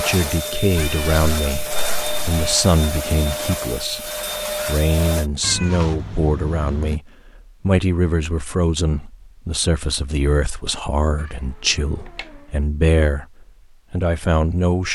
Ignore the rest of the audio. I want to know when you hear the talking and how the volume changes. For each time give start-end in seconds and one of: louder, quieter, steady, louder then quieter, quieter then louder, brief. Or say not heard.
0.0-14.8 steady.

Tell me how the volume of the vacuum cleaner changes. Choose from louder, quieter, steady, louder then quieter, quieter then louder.
steady.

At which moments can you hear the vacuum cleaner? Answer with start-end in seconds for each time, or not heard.
0.0-5.3.